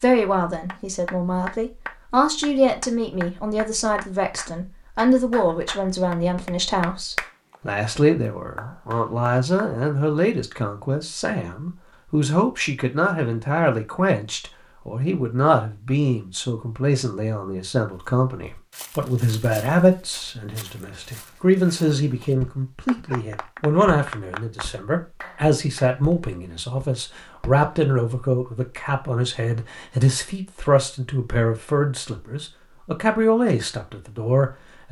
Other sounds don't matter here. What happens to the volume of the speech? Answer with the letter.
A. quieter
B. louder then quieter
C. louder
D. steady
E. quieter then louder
D.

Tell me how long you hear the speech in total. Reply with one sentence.
You can hear the speech for 35 seconds altogether.